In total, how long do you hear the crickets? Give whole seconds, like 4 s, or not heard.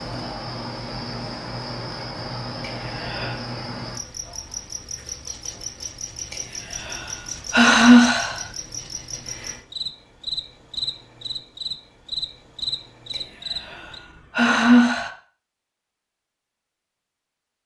14 s.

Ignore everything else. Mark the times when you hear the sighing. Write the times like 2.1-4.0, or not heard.
2.6-3.4, 6.3-8.5, 13.1-15.1.